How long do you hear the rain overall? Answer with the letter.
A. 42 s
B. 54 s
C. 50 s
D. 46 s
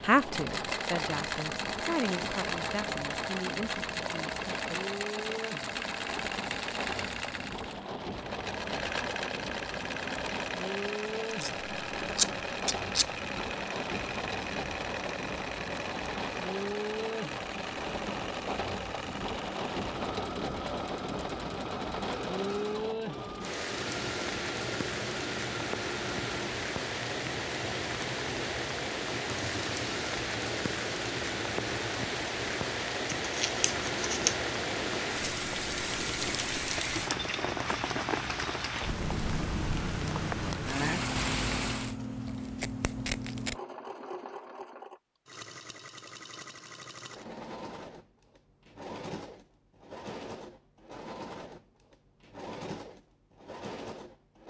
A.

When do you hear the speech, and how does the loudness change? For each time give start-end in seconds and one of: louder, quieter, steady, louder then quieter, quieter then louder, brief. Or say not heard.
0.0-4.8 quieter.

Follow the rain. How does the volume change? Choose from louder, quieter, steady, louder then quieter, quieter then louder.
louder.